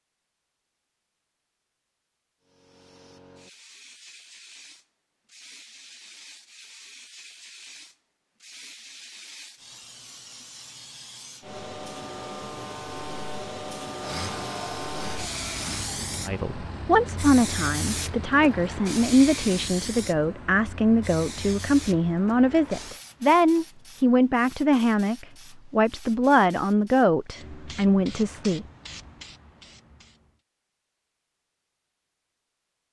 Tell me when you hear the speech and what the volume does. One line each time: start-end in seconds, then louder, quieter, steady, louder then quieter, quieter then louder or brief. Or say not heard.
16.2-28.6 steady.